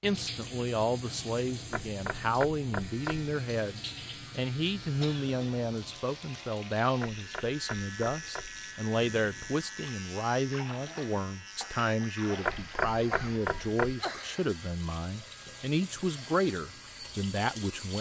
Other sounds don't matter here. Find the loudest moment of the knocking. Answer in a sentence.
The loudest moment of the knocking is at 13 seconds.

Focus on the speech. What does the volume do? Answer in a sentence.
The volume of the speech stays about the same.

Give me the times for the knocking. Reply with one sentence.
The knocking can be heard from 1.7 to 3.3 s, from 7.0 to 8.6 s and from 12.4 to 13.9 s.